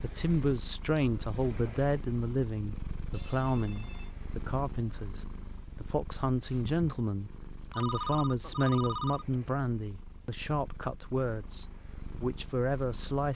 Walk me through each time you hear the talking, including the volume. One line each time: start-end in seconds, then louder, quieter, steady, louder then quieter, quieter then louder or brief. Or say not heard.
0.0-13.3 steady.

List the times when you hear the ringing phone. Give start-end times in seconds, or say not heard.
3.1-4.1, 7.7-9.5.